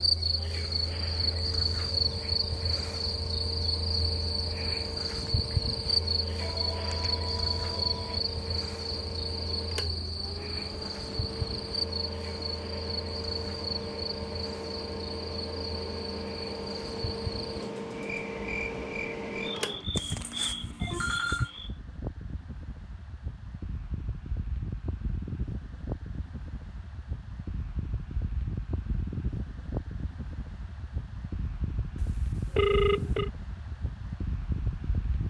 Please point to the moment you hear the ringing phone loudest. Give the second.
33 s.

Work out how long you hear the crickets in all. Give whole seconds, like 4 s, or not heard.
22 s.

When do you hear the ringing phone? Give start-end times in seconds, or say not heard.
6.3-8.2, 19.9-21.5, 31.9-33.3.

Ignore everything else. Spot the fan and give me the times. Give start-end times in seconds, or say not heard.
0.0-35.2.